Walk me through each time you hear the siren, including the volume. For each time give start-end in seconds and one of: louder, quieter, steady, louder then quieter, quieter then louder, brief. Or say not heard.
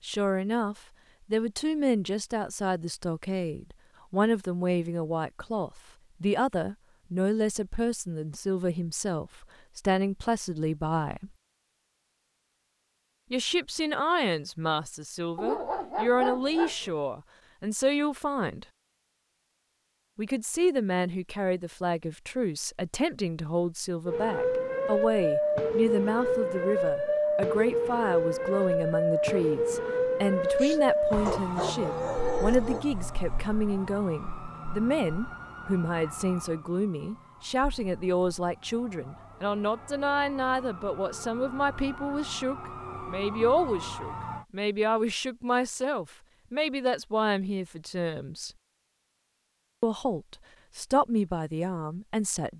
24.1-44.5 quieter then louder.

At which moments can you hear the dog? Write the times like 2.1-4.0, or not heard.
15.3-16.9, 30.6-32.9.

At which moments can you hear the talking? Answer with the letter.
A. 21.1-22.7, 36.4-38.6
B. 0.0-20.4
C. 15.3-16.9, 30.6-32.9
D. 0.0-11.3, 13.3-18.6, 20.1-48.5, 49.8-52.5
D.